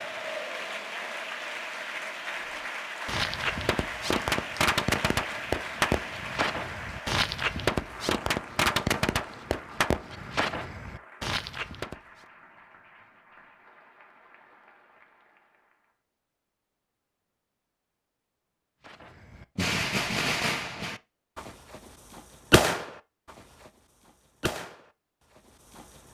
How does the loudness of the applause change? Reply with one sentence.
The volume of the applause goes down.